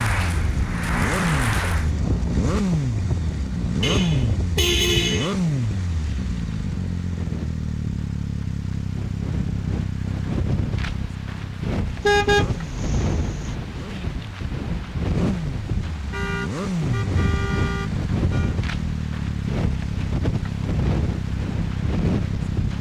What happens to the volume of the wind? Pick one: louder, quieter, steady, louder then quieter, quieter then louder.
quieter then louder.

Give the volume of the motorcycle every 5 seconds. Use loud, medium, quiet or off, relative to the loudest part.
loud, loud, medium, loud, loud.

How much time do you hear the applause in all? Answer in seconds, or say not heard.
2 s.